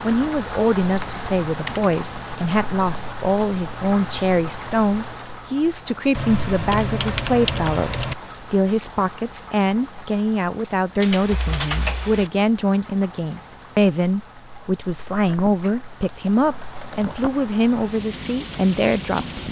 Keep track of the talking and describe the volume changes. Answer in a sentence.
The volume of the talking stays about the same.